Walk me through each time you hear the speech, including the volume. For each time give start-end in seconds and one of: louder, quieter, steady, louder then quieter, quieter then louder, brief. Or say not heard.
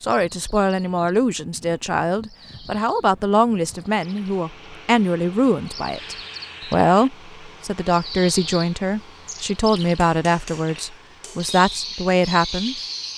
0.0-13.1 steady.